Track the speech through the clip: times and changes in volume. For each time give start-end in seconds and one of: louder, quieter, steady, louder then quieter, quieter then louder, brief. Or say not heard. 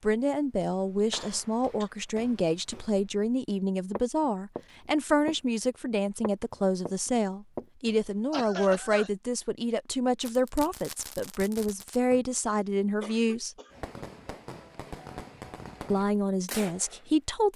0.0-13.6 steady
15.9-17.5 brief.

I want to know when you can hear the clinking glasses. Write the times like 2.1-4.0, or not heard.
not heard.